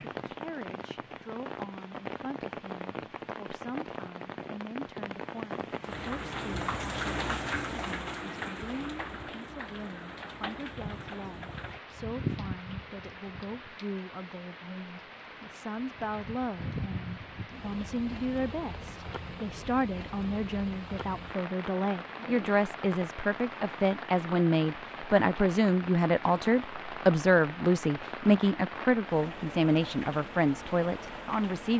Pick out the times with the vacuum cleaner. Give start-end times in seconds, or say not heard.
not heard.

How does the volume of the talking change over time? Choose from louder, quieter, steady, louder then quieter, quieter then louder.
louder.